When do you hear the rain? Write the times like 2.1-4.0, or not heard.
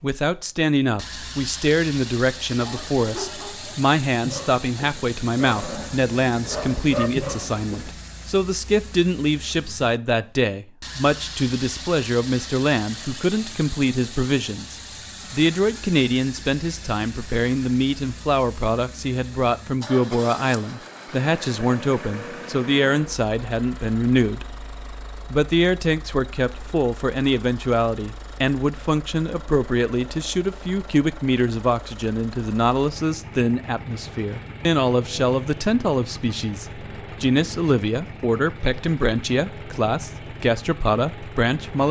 not heard.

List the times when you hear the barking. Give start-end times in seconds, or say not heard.
2.5-7.9.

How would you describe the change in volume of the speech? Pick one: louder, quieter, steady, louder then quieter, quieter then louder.
steady.